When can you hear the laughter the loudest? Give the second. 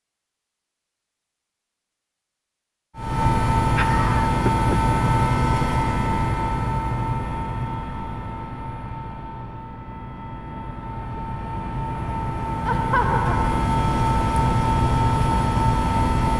13 s.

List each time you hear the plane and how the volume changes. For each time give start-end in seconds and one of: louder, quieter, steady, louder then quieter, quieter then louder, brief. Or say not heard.
3.0-16.3 quieter then louder.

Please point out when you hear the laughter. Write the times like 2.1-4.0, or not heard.
3.5-5.0, 12.7-13.7.